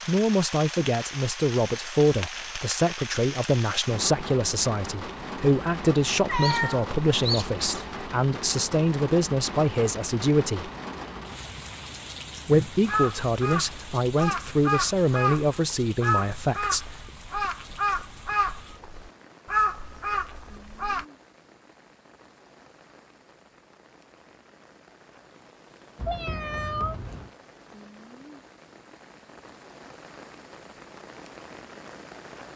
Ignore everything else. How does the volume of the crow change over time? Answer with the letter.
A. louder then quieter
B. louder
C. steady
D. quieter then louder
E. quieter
C.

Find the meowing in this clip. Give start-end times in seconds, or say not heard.
6.2-7.9, 25.9-27.3.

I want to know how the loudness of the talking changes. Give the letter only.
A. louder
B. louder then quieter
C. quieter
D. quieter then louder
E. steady
E.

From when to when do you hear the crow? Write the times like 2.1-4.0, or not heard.
12.5-21.1.